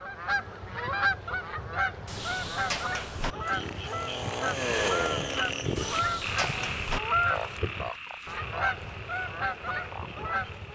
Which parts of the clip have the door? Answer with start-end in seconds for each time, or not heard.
2.0-3.4, 5.8-7.0.